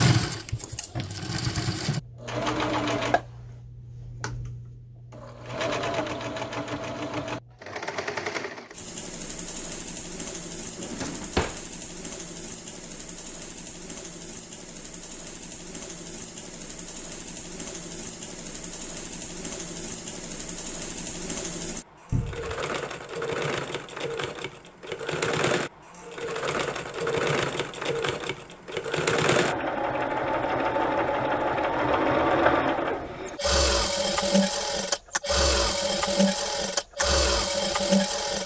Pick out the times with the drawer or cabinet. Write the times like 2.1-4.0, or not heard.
10.8-11.6, 22.1-22.6.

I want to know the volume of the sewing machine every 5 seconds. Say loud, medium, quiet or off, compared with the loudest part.
medium, medium, quiet, quiet, medium, loud, loud, loud.